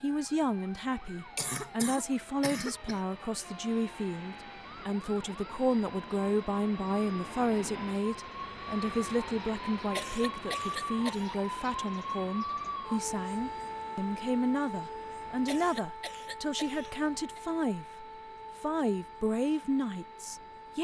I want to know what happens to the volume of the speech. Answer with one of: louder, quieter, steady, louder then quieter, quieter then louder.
steady.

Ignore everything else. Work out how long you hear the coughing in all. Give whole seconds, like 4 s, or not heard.
5 s.